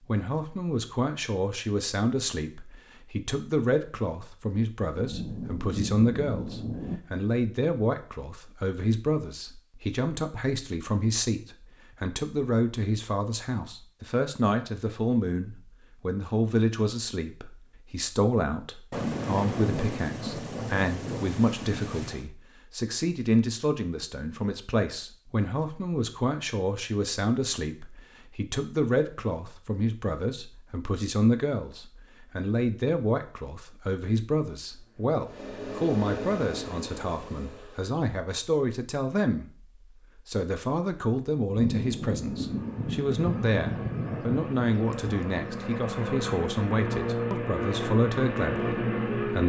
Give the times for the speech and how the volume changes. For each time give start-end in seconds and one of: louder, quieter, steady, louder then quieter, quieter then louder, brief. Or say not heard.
0.1-39.5 steady
40.1-49.4 steady.